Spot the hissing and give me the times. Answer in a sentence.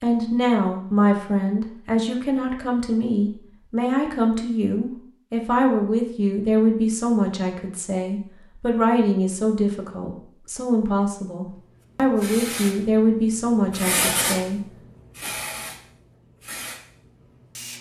The hissing can be heard from 11.5 to 17.7 s.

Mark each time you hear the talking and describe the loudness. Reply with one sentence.
You can hear the talking from 0.0 to 14.6 s, at a steady volume.